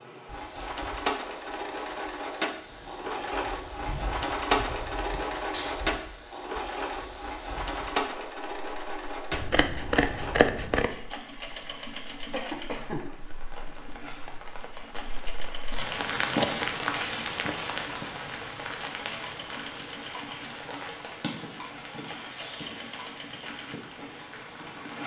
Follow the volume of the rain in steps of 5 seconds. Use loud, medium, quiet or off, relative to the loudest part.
quiet, quiet, quiet, loud, medium.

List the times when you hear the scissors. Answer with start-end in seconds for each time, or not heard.
9.3-10.9.